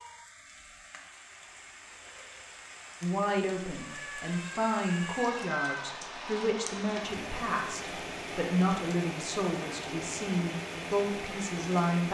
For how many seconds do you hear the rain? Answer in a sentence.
The rain can be heard for 12 seconds in total.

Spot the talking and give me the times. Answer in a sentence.
The talking can be heard from 3.0 to 12.1 s.